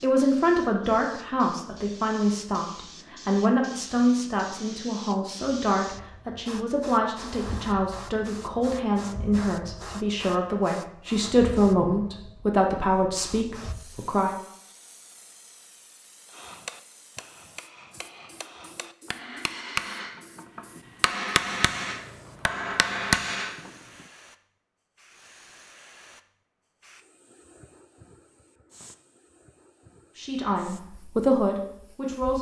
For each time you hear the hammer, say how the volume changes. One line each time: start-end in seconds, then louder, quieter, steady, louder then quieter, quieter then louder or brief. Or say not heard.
16.3-23.7 louder.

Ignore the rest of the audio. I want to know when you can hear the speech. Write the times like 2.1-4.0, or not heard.
0.0-14.3, 30.1-32.3.